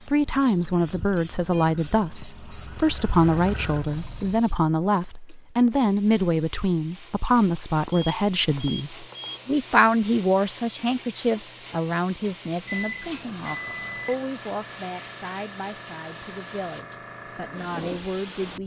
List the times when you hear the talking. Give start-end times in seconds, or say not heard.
0.1-18.6.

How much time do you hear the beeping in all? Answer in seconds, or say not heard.
4 s.